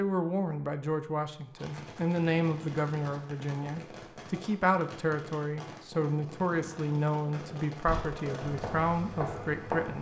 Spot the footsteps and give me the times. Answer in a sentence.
The footsteps can be heard from 7.8 to 9.9 s.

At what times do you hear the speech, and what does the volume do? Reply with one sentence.
The speech can be heard from 0.0 to 9.9 s, at a steady volume.